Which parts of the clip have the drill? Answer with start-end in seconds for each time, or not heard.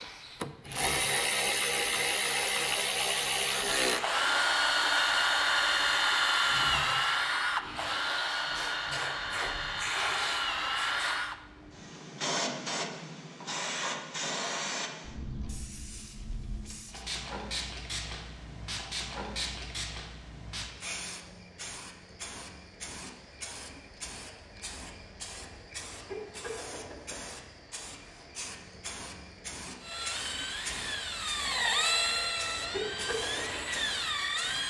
0.0-11.3, 29.8-34.6.